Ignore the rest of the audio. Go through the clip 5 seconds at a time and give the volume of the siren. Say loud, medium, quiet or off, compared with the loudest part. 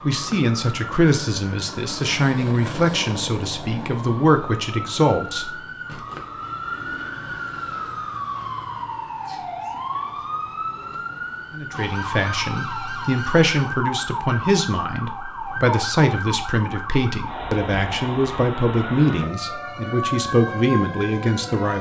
medium, loud, loud, loud, loud.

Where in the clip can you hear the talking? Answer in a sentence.
The talking can be heard from 0.0 to 5.6 s and from 11.6 to 21.7 s.